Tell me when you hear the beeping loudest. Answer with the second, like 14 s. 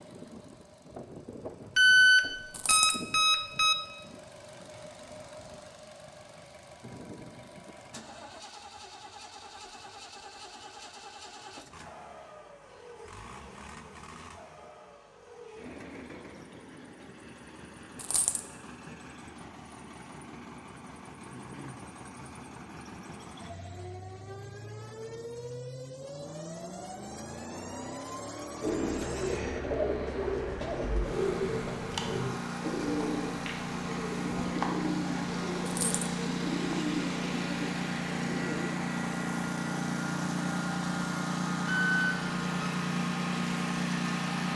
2 s.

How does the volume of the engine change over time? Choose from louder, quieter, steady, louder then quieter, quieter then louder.
louder.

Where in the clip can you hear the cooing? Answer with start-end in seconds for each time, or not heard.
28.6-38.6.